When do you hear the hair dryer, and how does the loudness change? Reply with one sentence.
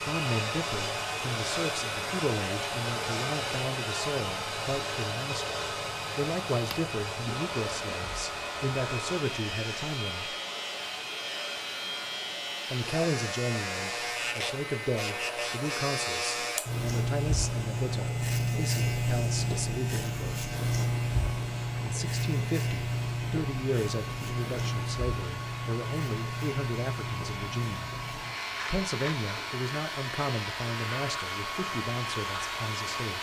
You can hear the hair dryer from 0.0 to 33.1 s, getting quieter then louder.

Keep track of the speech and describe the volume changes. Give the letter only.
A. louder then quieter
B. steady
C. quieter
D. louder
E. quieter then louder
B.